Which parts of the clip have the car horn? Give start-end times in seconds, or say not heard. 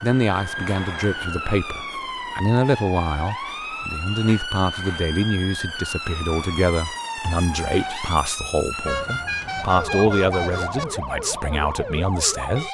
8.8-10.8.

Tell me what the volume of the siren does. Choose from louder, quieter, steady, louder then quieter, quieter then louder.
steady.